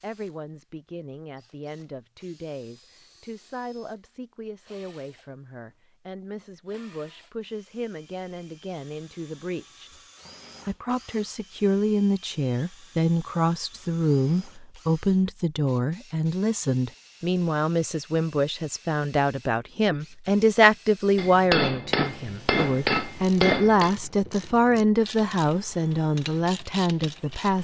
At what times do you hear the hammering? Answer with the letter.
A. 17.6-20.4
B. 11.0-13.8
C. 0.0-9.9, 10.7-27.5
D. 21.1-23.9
D.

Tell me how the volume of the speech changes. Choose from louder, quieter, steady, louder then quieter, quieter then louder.
louder.